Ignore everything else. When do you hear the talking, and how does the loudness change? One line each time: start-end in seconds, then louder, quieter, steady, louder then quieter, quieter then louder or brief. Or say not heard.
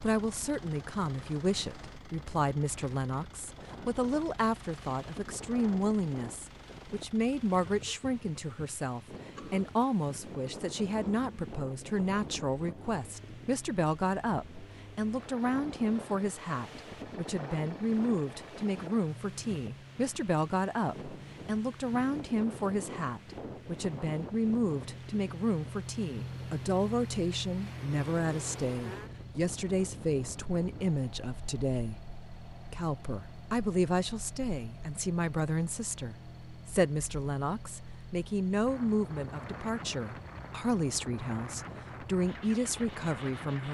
0.0-43.7 steady.